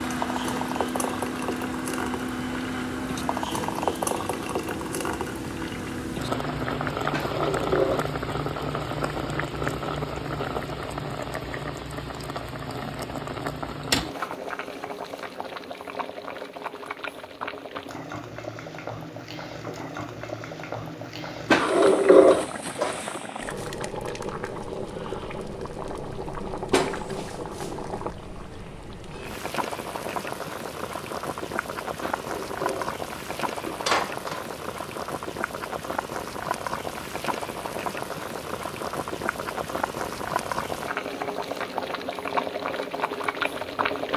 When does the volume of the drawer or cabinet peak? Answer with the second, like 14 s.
22 s.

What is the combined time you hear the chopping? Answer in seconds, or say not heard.
not heard.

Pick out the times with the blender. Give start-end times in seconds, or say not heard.
0.0-6.8.